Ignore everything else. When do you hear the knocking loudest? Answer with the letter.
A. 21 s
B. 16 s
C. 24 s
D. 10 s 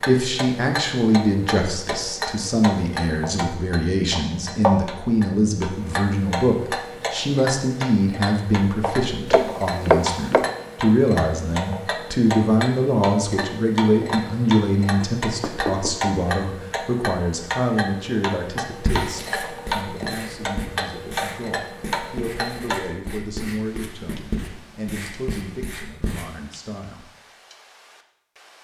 D.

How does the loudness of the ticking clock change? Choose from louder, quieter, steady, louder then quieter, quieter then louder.
quieter.